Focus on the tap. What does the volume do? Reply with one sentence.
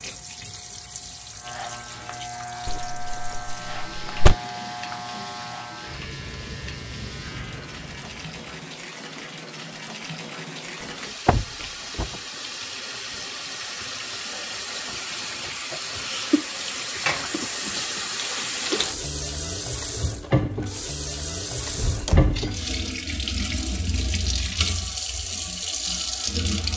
The volume of the tap goes up.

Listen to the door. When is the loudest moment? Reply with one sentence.
The volume of the door peaks at 4 seconds.